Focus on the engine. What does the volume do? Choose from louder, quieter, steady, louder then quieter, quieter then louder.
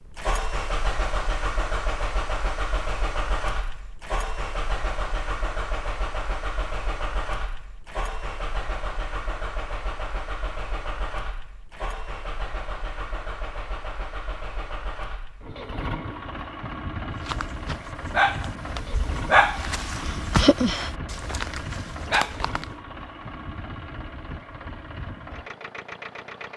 quieter.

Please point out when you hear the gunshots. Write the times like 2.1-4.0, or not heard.
not heard.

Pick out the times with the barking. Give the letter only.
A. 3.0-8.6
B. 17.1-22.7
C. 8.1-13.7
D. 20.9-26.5
B.